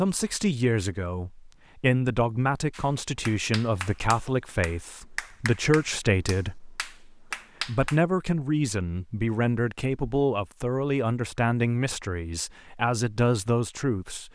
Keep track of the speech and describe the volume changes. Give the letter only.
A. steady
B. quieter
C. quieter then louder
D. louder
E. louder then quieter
A.